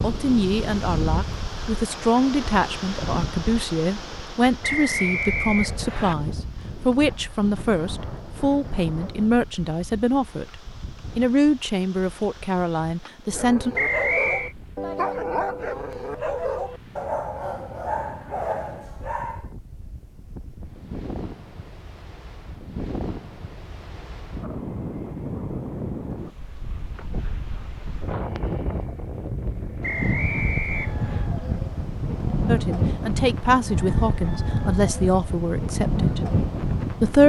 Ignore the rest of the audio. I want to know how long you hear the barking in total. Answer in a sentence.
The barking can be heard for 6 seconds in total.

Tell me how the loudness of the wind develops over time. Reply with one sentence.
The loudness of the wind goes down, then up.